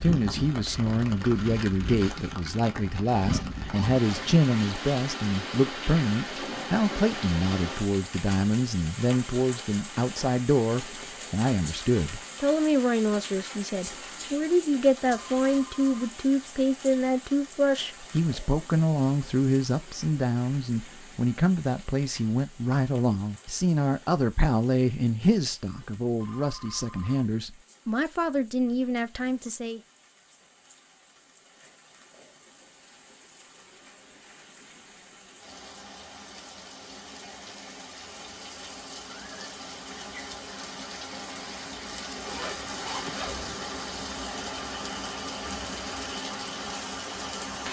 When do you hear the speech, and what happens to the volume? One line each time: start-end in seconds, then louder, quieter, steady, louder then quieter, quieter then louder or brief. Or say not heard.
0.0-29.8 steady.